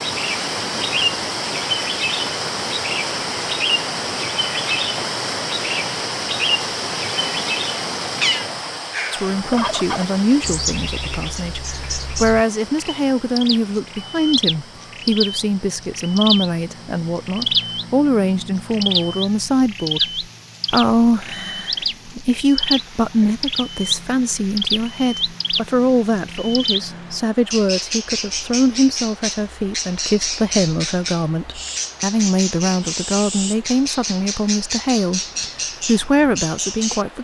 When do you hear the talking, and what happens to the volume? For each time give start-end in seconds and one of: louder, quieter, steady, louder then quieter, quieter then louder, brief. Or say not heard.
9.1-37.1 steady.